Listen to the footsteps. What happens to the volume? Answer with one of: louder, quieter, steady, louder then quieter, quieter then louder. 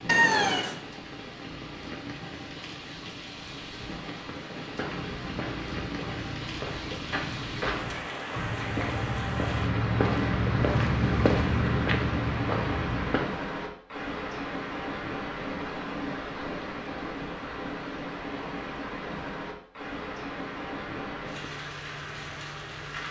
louder.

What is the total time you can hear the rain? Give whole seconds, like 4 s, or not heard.
23 s.